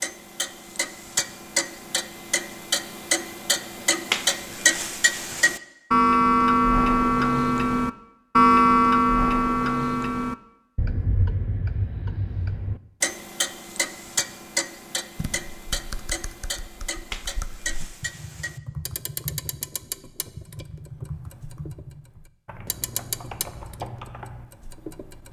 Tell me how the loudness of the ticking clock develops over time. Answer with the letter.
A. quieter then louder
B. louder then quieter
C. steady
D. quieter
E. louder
B.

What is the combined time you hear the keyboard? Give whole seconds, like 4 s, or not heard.
9 s.